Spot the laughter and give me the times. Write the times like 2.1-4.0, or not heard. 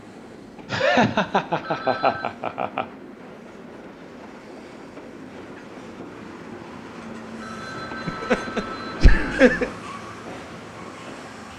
0.7-2.9, 8.1-9.7.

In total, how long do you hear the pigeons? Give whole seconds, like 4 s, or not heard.
not heard.